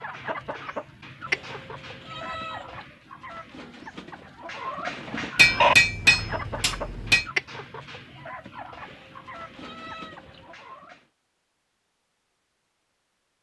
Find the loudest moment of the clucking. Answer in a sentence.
The volume of the clucking peaks at 6 seconds.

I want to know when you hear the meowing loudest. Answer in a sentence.
The volume of the meowing peaks at 2 seconds.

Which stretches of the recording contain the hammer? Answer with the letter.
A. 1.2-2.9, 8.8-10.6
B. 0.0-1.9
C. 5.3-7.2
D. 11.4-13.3
C.